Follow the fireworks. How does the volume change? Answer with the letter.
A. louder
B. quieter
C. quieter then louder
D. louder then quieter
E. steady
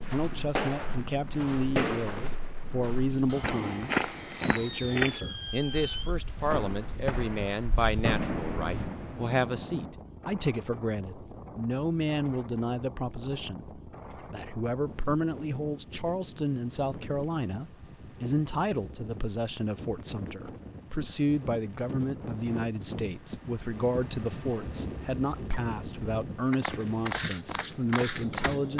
C.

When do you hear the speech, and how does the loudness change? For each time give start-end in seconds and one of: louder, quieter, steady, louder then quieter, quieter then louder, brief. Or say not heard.
0.0-28.7 steady.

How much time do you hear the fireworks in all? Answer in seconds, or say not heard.
10 s.